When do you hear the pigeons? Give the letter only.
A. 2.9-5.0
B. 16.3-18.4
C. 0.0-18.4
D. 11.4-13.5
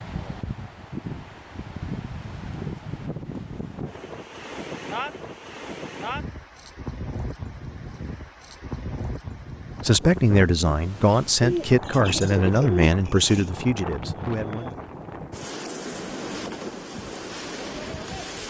D.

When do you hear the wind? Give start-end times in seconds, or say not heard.
0.0-18.4.